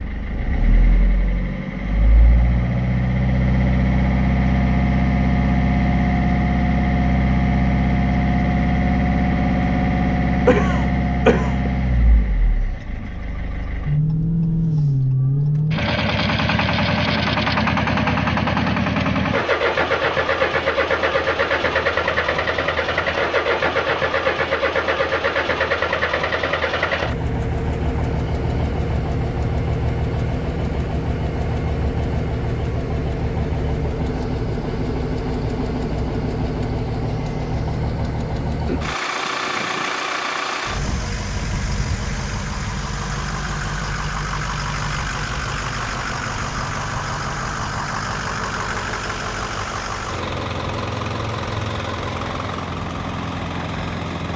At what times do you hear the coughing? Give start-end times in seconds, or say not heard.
10.4-11.7.